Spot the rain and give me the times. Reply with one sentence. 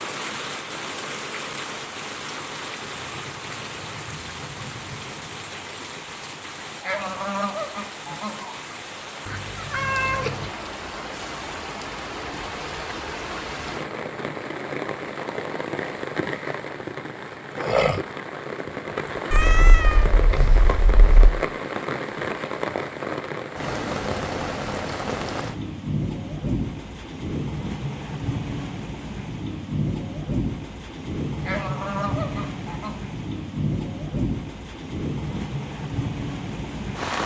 The rain can be heard from 0.0 to 37.2 s.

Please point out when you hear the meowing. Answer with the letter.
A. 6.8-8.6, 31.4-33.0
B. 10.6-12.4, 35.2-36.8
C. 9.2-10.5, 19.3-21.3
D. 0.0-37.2
C.